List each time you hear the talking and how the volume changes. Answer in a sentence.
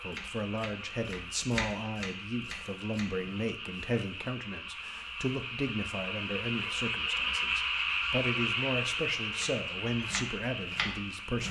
The talking can be heard from 0.0 to 11.4 s, at a steady volume.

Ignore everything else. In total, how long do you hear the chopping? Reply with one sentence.
The chopping can be heard for 5 seconds in total.